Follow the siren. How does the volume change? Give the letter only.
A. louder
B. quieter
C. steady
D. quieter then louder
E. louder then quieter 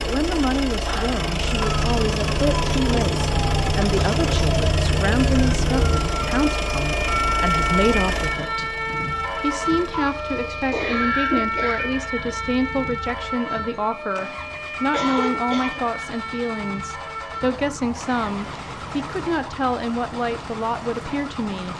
B.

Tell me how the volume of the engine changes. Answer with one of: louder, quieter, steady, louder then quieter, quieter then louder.
quieter then louder.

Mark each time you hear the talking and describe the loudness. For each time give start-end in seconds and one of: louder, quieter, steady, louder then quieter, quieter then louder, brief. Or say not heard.
0.0-8.8 steady
9.3-21.7 steady.